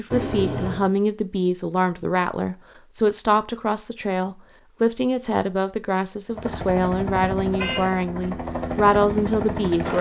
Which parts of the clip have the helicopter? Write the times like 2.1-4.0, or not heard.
6.3-9.9.